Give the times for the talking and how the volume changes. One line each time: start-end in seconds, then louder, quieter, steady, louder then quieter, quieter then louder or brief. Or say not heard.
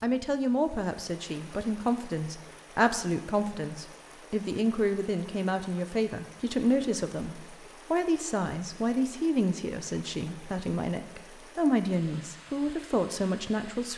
0.0-13.9 steady.